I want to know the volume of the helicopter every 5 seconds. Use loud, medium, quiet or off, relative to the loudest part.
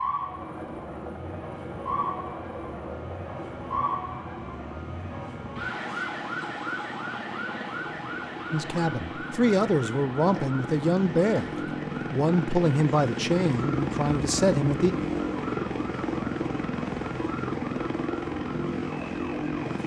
medium, medium, loud, loud.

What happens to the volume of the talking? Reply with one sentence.
The volume of the talking stays about the same.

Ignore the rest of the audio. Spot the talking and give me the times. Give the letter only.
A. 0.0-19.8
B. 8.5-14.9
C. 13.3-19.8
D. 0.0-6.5
B.